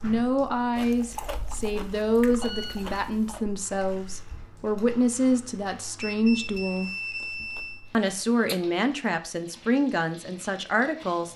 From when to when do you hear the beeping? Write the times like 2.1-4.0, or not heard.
2.4-3.0, 6.0-7.8.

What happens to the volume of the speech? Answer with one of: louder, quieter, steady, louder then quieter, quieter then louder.
steady.